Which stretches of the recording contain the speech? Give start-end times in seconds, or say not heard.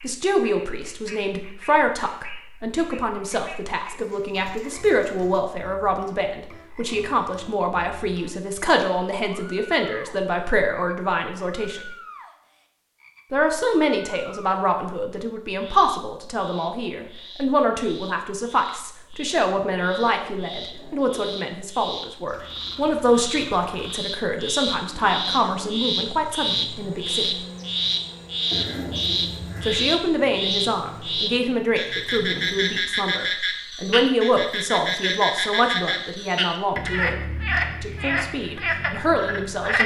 0.0-11.9, 13.3-27.3, 29.6-37.1, 37.8-39.8.